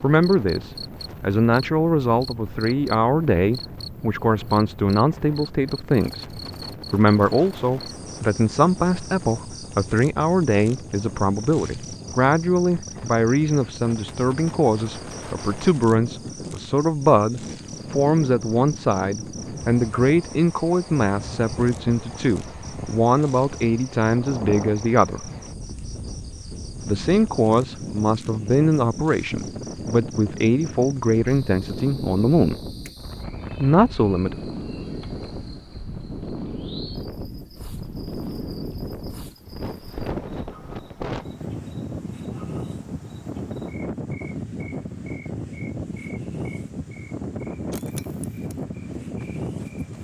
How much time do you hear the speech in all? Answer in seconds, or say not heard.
32 s.